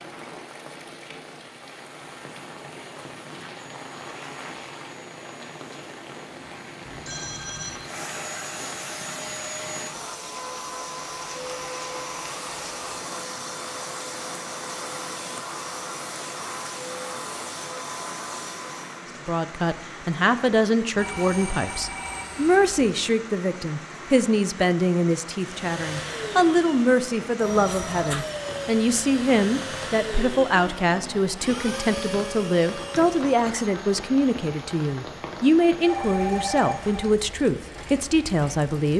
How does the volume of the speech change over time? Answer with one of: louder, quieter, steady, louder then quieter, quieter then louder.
steady.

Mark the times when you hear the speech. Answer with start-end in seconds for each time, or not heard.
19.2-38.9.